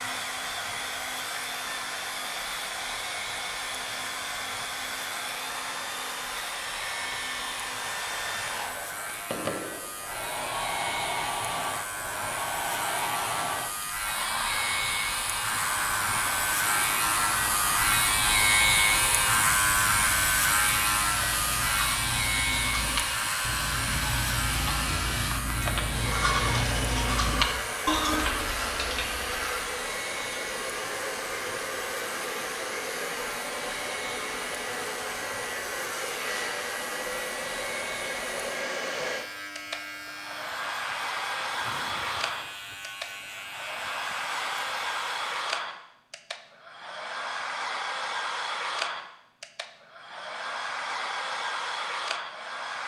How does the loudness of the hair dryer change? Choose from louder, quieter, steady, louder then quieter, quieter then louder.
steady.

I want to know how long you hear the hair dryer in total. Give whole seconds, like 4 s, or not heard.
53 s.